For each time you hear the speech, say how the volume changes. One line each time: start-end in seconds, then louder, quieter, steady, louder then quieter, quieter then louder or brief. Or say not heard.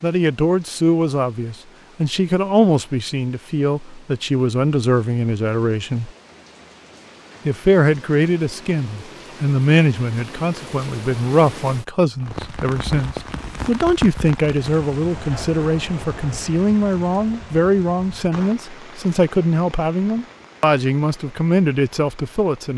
0.0-6.1 steady
7.5-22.7 steady.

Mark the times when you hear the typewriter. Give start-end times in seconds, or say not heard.
not heard.